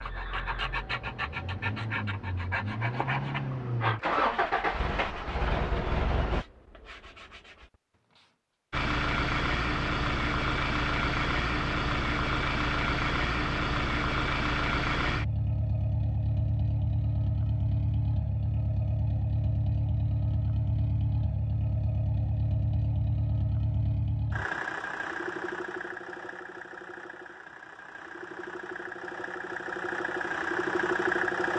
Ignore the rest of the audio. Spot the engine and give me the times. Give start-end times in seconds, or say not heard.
0.0-6.5, 8.7-31.5.